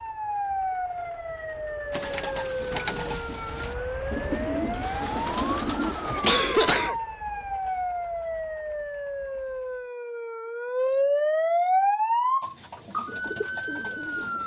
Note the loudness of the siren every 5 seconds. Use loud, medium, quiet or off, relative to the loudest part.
medium, medium, loud.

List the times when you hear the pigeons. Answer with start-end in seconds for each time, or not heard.
1.9-7.0, 12.4-14.4.